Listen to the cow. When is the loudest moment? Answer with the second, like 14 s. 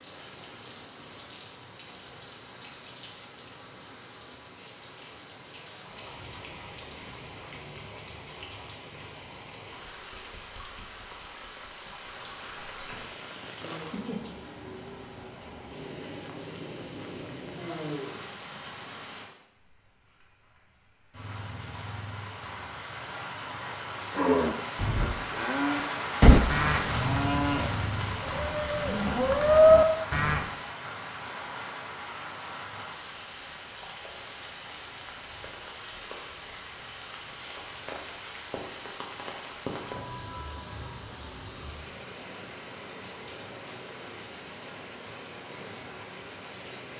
30 s.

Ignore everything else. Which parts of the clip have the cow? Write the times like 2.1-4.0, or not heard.
24.1-30.4.